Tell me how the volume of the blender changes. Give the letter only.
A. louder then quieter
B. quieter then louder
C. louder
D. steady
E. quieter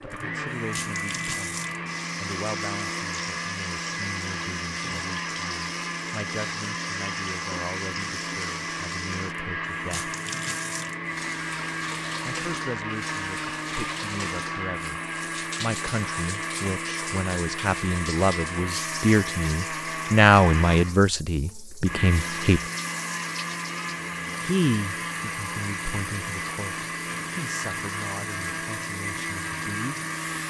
D.